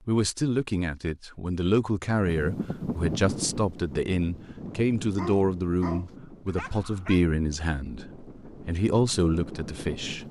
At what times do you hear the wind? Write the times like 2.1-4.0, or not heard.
2.2-10.2.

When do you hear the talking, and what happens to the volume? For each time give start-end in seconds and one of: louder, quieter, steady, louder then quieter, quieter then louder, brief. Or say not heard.
0.1-10.2 steady.